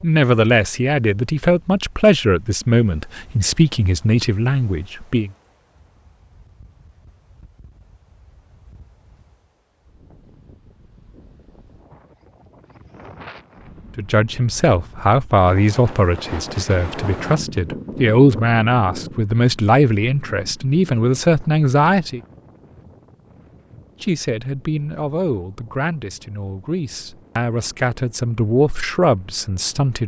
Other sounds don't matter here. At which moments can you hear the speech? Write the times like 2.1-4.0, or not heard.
0.0-5.3, 13.9-22.2, 24.0-30.0.